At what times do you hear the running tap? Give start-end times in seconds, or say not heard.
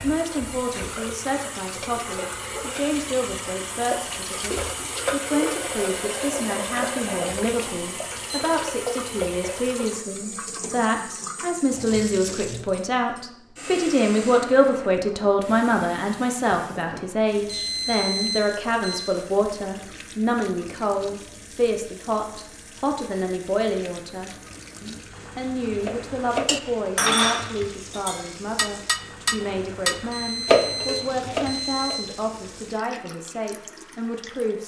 0.0-34.6.